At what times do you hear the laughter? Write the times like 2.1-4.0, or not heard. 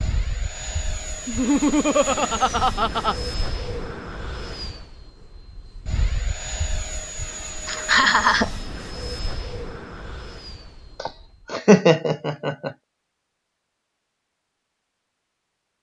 1.2-3.1, 7.7-8.5, 11.0-12.7.